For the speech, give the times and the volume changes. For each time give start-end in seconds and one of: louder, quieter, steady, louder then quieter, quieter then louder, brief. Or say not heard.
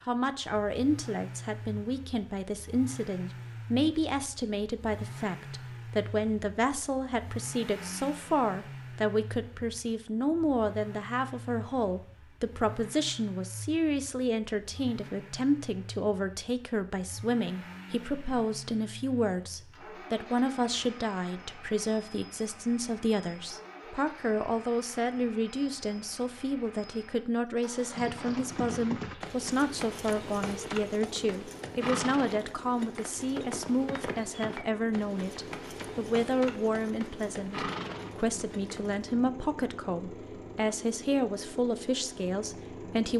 0.1-43.1 steady.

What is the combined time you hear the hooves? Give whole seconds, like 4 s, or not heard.
11 s.